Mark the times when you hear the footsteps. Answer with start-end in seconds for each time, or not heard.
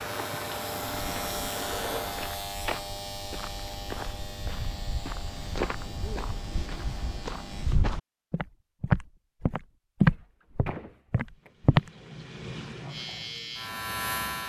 1.0-11.9.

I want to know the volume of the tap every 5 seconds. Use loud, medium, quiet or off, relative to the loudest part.
loud, off, medium.